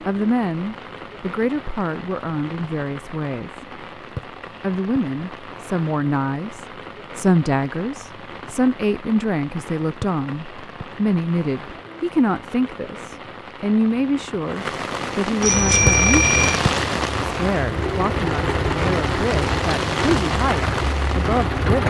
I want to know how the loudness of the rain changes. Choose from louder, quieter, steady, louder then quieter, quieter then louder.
louder.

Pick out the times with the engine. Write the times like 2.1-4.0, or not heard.
15.4-21.8.